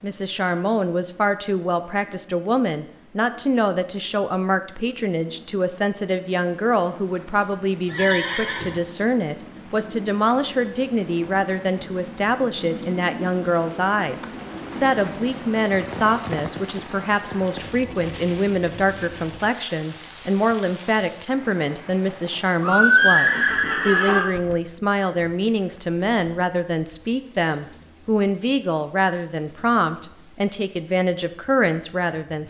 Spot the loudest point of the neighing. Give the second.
23 s.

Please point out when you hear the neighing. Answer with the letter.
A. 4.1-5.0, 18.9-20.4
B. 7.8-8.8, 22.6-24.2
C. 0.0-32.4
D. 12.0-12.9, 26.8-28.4
B.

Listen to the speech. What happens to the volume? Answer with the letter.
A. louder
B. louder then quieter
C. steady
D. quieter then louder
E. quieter
C.